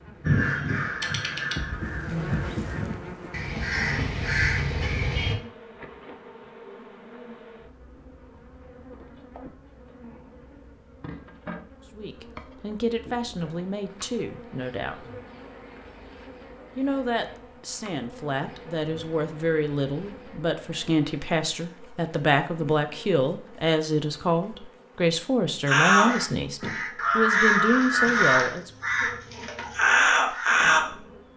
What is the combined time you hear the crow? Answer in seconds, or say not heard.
10 s.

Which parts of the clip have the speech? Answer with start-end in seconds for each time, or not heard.
11.9-15.1, 16.8-28.7.